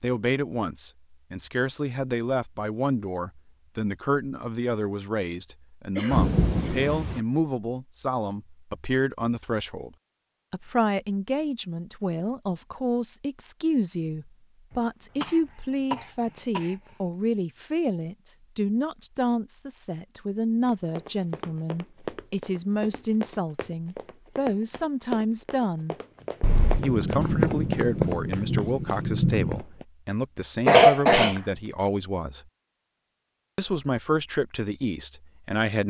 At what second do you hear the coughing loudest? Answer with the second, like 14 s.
31 s.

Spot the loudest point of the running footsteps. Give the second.
28 s.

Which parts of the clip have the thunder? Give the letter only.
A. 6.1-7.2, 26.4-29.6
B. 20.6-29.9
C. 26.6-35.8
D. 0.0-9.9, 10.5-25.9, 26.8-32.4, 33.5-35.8
A.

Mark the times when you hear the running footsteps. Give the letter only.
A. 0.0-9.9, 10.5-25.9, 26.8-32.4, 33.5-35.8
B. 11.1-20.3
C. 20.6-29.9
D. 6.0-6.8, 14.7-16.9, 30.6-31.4
C.